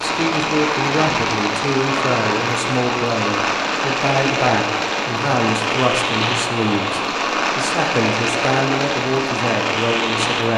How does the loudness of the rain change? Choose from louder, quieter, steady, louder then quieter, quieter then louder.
steady.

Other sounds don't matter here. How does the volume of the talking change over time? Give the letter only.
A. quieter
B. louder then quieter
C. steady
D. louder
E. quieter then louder
C.